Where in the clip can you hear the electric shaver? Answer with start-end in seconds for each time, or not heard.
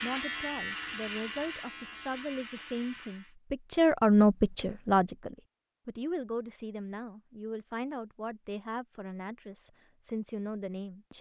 0.0-3.4.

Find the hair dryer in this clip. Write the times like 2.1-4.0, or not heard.
not heard.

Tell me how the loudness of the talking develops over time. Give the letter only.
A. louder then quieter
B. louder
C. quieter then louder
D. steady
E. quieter
A.